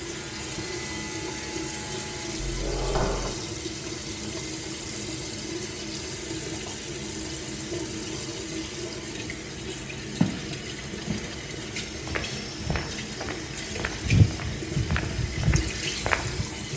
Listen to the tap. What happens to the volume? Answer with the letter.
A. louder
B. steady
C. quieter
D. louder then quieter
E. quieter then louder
B.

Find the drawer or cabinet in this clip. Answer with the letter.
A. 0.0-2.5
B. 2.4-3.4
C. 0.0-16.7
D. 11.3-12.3
B.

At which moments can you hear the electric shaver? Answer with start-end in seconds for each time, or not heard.
0.0-2.5.